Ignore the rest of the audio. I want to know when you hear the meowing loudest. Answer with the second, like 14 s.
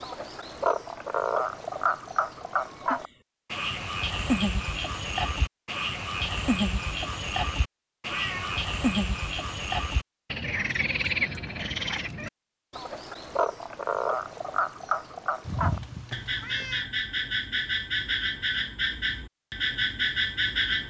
16 s.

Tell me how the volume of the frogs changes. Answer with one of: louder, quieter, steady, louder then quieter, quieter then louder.
steady.